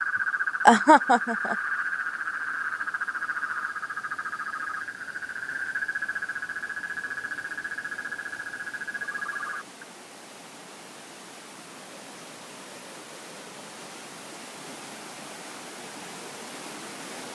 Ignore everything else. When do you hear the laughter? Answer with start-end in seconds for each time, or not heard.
0.7-1.6.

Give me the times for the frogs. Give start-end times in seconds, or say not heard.
0.0-9.8.